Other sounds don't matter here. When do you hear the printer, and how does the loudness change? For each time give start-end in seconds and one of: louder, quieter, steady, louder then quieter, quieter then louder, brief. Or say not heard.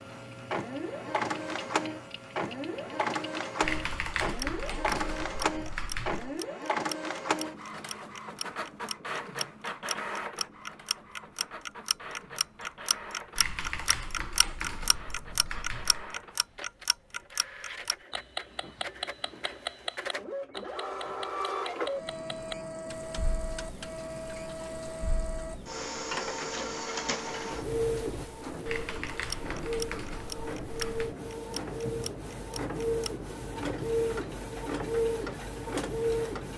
0.0-36.5 quieter then louder.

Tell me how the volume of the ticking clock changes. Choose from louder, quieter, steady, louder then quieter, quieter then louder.
louder then quieter.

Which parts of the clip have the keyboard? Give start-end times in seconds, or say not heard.
3.6-6.4, 13.3-16.1, 28.6-31.1.